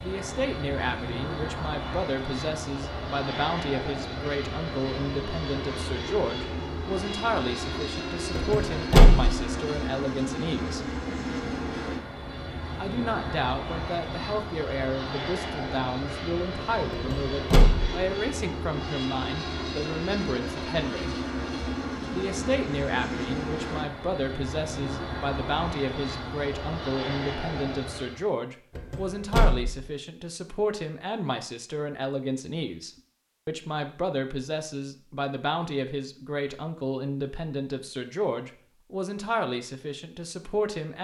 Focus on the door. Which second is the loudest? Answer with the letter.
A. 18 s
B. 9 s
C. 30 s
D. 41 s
B.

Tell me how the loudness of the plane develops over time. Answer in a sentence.
The volume of the plane stays about the same.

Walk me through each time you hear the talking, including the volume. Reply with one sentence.
The talking can be heard from 0.0 to 10.8 s, at a steady volume; from 12.8 to 21.1 s, at a steady volume; and from 22.1 to 40.9 s, at a steady volume.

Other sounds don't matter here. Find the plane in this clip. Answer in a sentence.
You can hear the plane from 0.0 to 28.2 s.